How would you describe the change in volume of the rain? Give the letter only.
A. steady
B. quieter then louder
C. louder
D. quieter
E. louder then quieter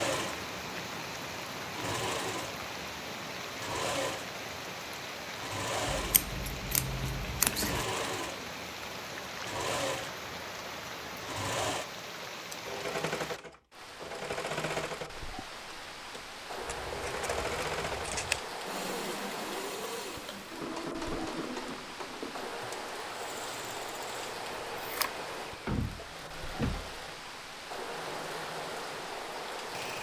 A.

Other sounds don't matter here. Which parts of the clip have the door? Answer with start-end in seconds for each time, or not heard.
25.6-26.9.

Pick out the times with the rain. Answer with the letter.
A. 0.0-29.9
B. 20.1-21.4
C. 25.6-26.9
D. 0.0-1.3
A.